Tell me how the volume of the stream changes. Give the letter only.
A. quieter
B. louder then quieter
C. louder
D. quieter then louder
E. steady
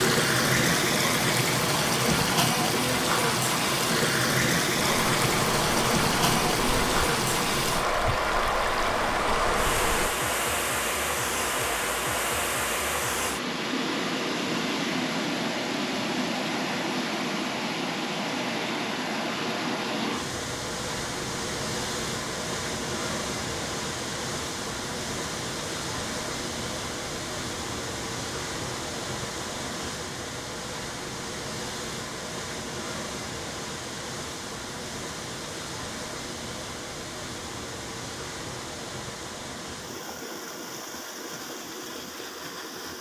A.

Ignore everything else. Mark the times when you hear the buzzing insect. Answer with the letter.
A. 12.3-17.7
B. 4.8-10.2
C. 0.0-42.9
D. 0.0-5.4
B.